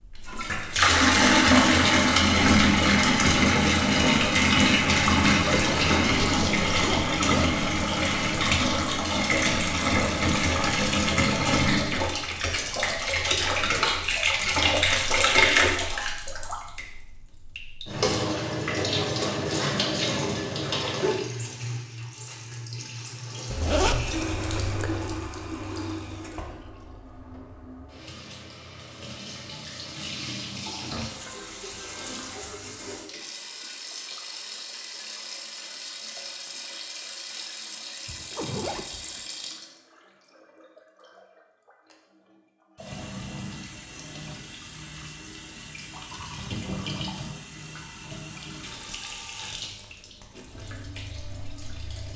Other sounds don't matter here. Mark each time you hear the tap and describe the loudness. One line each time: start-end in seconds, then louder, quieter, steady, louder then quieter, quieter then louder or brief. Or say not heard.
0.0-52.1 quieter.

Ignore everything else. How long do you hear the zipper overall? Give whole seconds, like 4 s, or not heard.
5 s.